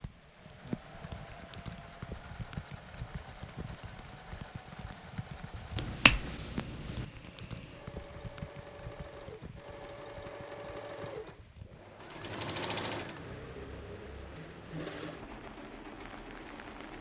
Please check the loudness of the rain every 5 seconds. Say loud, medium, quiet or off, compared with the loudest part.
loud, loud, medium, medium.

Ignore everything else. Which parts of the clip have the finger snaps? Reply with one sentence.
You can hear the finger snaps from 5.8 to 7.0 s.